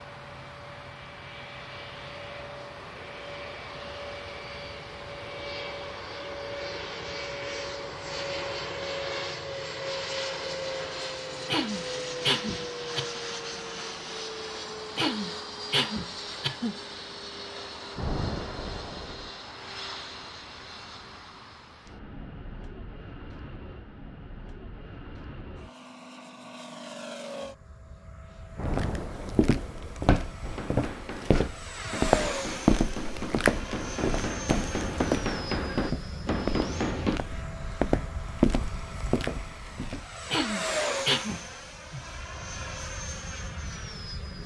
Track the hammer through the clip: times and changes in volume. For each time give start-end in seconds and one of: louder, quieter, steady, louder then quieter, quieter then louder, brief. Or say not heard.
30.4-37.2 louder.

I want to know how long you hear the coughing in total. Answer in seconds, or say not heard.
5 s.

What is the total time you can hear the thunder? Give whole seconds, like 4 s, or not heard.
3 s.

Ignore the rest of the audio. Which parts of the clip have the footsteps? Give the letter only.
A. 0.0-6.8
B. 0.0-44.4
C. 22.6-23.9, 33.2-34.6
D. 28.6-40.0
D.